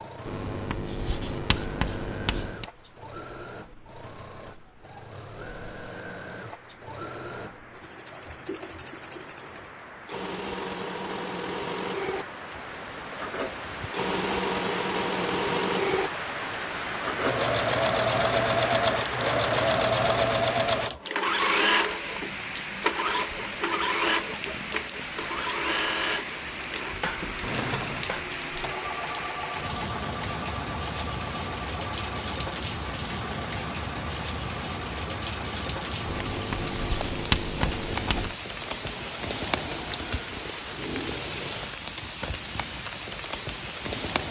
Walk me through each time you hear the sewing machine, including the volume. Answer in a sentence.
You can hear the sewing machine from 0.0 to 40.2 s, getting louder then quieter.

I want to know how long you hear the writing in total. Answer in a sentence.
The writing can be heard for 5 seconds in total.